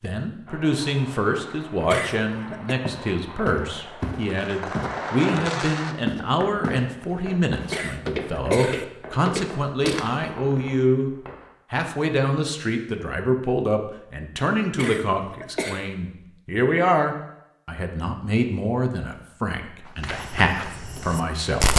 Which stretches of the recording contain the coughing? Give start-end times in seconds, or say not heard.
1.9-2.8, 7.7-8.8, 14.8-15.8.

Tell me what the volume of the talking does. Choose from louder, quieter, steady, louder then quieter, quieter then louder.
steady.